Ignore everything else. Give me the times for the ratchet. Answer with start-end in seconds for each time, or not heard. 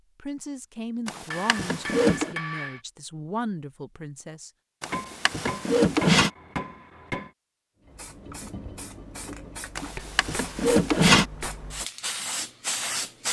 not heard.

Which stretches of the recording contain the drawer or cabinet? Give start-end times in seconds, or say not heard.
1.1-2.4, 4.8-6.3, 9.8-11.3.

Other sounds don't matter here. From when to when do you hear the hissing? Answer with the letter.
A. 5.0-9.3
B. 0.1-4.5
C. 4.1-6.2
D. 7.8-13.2
D.